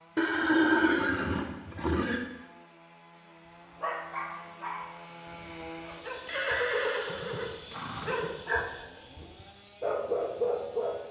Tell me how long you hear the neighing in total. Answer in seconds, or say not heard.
4 s.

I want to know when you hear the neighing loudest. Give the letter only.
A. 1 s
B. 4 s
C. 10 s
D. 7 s
A.